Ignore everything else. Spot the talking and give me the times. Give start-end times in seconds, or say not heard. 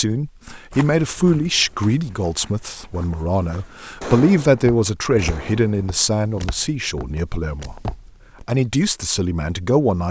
0.0-10.0.